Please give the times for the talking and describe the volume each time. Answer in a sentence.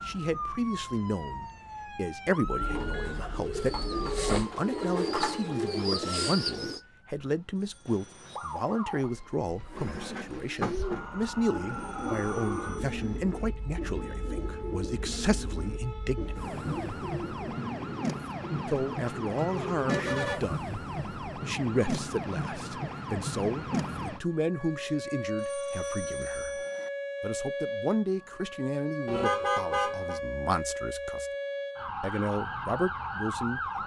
You can hear the talking from 0.1 to 16.4 s, at a steady volume; from 18.6 to 31.3 s, at a steady volume; and briefly from 32.0 to 33.7 s.